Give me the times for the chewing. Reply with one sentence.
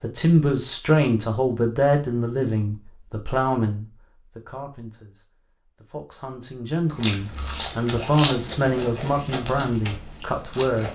The chewing can be heard from 7.0 to 10.9 s.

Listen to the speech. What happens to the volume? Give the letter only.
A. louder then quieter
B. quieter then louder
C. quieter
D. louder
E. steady
B.